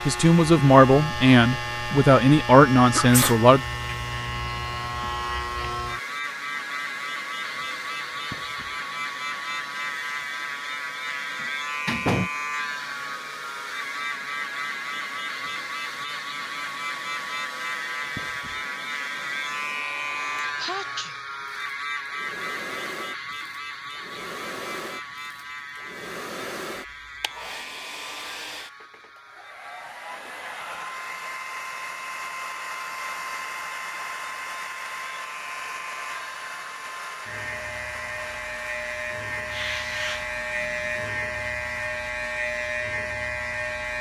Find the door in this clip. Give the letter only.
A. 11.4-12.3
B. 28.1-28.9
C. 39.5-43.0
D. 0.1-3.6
A.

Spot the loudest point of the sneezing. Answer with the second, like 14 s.
3 s.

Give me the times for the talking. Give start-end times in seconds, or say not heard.
0.1-3.6.